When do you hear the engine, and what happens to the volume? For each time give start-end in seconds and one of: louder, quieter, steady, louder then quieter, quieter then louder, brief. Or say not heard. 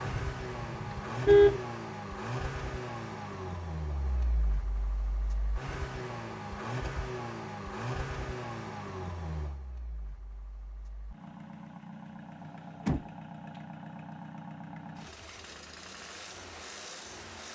0.0-17.4 quieter.